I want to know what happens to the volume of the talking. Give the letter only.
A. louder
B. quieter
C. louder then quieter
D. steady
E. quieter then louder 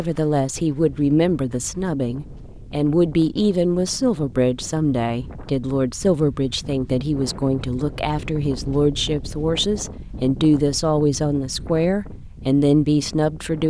D.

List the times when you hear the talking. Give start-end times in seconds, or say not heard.
0.0-13.6.